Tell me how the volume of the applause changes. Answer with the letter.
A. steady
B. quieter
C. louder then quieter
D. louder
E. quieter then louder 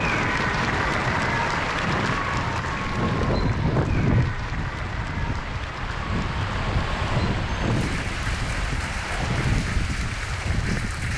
B.